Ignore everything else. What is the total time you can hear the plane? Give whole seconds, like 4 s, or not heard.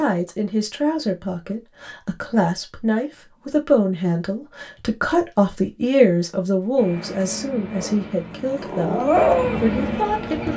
4 s.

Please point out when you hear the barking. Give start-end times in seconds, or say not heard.
7.8-10.5.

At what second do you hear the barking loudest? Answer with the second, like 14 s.
9 s.